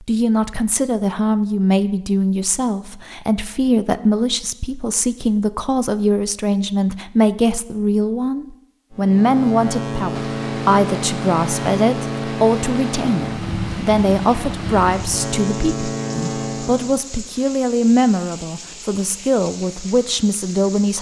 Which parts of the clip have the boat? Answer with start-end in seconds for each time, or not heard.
8.9-17.0.